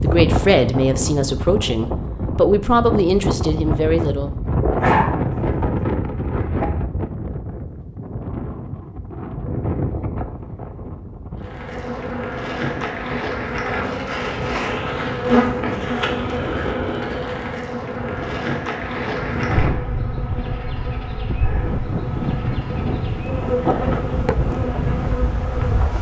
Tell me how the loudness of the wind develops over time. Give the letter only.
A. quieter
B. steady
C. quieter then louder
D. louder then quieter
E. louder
C.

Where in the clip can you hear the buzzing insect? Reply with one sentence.
The buzzing insect can be heard from 11.4 to 25.9 s.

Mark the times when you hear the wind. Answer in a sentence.
The wind can be heard from 0.0 to 25.9 s.